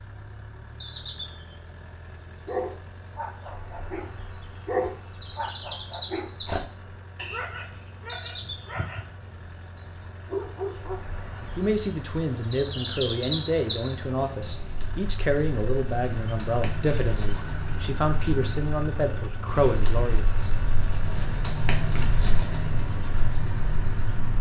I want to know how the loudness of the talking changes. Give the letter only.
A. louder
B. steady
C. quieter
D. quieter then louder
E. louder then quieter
B.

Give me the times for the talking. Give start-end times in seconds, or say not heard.
11.6-20.2.